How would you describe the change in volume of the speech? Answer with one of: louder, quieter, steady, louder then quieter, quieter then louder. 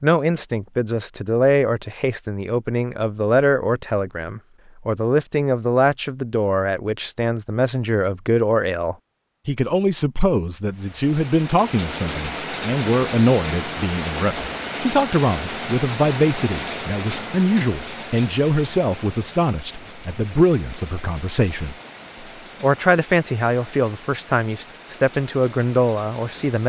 steady.